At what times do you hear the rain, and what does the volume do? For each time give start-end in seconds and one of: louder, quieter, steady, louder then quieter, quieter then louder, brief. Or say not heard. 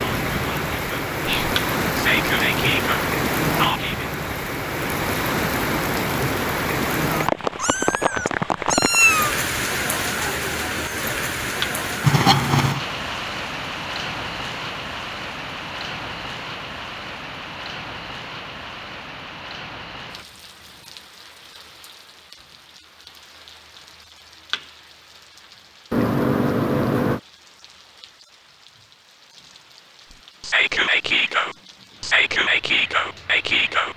0.0-33.9 quieter.